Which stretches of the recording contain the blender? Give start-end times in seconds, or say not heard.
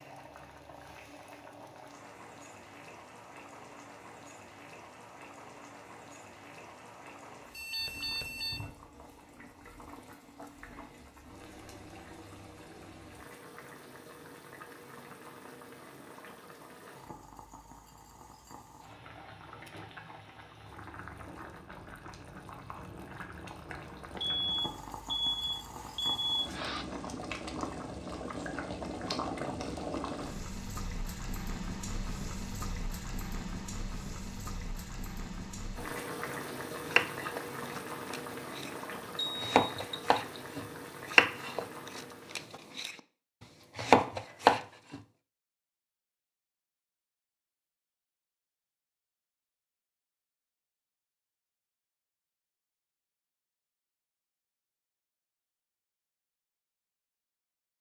not heard.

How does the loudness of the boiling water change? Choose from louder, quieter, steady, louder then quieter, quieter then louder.
louder.